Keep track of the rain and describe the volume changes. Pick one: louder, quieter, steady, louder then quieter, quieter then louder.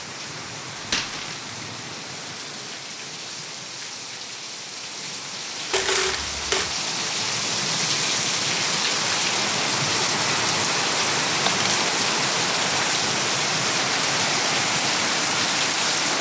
louder.